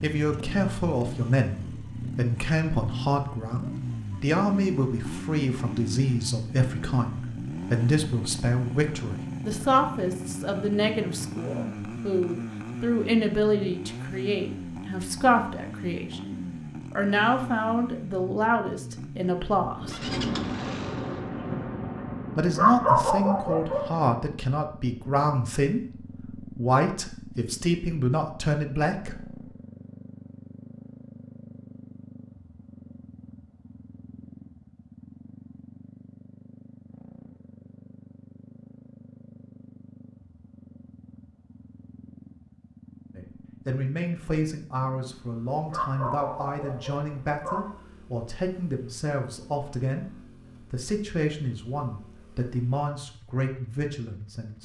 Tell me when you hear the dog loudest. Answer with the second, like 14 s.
23 s.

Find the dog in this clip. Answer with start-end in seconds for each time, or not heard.
22.6-23.9, 45.7-47.7.